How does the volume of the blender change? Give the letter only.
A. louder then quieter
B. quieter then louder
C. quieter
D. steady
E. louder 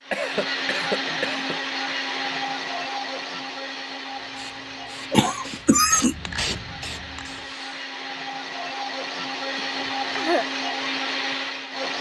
B.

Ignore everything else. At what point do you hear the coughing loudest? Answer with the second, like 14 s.
6 s.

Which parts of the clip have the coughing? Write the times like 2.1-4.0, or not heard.
0.1-1.6, 5.1-6.2, 9.6-10.4.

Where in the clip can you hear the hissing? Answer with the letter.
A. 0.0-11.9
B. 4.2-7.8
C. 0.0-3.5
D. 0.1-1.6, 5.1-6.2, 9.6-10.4
B.